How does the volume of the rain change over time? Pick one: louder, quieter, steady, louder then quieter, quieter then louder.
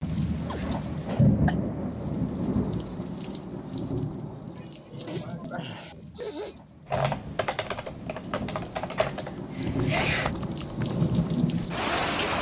quieter then louder.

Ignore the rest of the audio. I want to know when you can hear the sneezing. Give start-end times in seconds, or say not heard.
0.5-1.6, 4.5-6.5, 8.9-10.3.